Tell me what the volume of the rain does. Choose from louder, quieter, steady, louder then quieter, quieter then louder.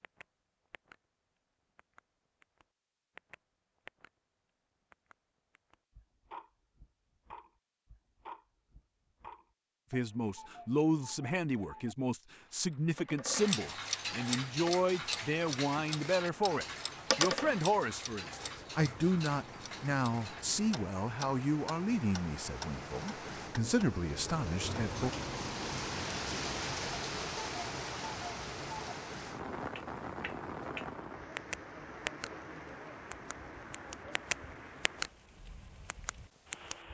louder then quieter.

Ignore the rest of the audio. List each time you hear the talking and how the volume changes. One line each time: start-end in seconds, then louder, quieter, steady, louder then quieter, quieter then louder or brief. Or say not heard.
9.9-25.1 steady.